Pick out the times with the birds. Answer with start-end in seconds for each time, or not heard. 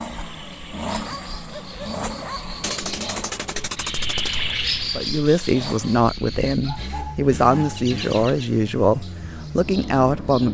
0.0-10.4.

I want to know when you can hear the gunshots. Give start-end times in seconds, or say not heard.
2.6-4.5.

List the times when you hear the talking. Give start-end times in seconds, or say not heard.
5.0-10.4.